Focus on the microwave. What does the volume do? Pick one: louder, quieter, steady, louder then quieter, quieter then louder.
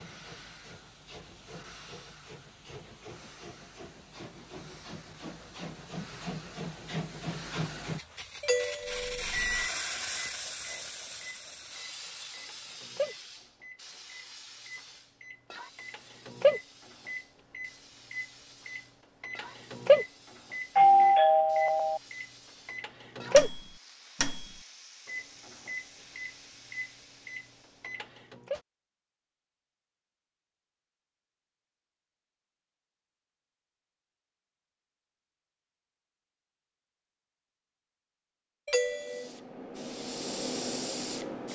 louder then quieter.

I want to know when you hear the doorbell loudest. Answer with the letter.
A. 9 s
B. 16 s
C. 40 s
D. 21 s
D.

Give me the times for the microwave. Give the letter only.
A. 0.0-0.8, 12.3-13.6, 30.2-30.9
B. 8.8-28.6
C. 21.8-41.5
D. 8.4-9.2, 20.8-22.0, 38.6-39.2
B.